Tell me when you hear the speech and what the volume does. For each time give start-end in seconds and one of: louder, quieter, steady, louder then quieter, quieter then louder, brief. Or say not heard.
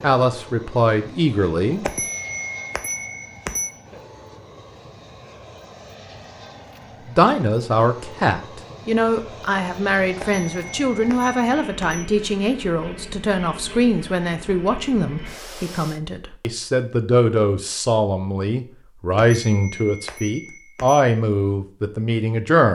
0.0-1.9 brief
7.1-22.6 steady.